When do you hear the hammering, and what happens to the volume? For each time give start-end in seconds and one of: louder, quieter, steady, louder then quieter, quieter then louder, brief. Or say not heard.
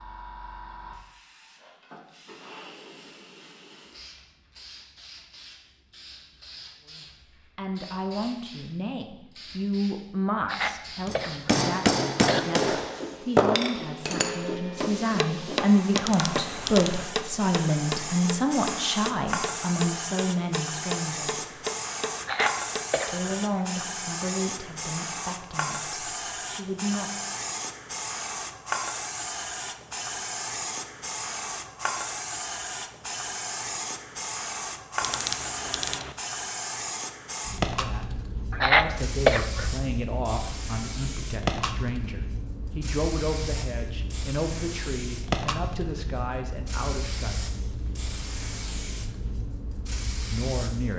11.1-23.1 quieter.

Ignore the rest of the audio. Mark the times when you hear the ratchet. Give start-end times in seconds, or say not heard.
15.9-17.1, 35.0-36.1.